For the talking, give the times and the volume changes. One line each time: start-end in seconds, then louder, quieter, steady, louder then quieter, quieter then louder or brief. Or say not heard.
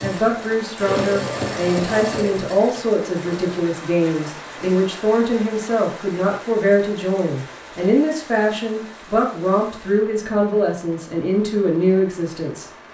0.0-12.7 steady.